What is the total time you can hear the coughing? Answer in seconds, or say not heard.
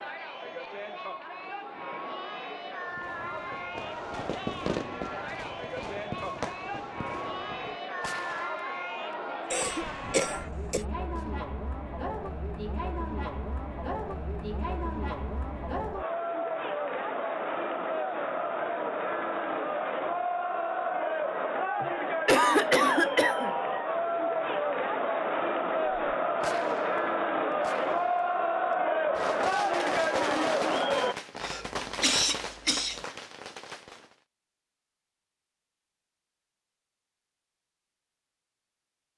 5 s.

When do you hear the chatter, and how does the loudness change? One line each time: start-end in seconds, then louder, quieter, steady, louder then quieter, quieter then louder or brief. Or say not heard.
0.0-31.1 louder.